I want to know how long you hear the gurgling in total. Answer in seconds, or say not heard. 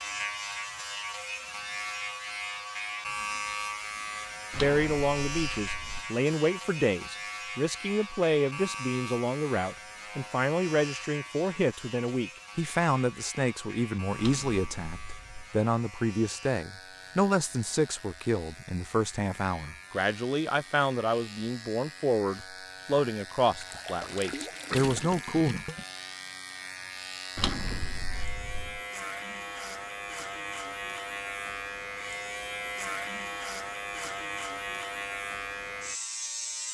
2 s.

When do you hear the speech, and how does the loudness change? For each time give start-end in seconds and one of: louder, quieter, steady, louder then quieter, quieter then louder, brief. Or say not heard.
4.5-25.6 steady.